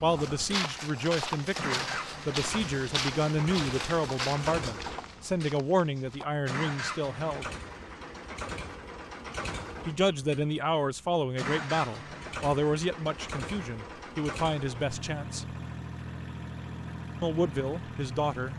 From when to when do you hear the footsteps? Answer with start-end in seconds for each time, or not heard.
0.1-6.3.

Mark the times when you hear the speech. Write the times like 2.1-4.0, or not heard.
0.0-7.5, 9.8-15.4, 17.2-18.5.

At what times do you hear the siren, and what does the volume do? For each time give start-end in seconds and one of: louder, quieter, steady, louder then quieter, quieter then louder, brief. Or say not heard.
not heard.